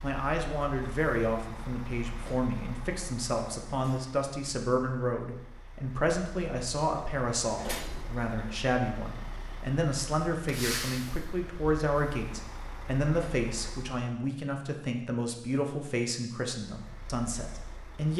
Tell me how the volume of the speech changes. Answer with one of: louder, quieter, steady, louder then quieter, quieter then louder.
steady.